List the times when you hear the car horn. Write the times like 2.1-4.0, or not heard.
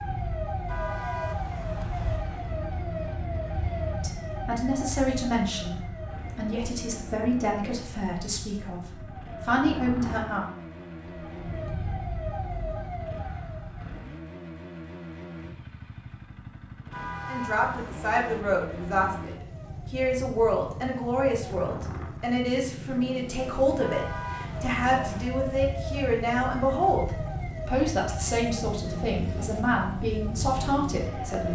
0.7-2.2, 16.9-18.4, 23.8-25.3.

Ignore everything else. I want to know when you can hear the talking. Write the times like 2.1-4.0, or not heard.
3.9-10.4, 17.2-31.5.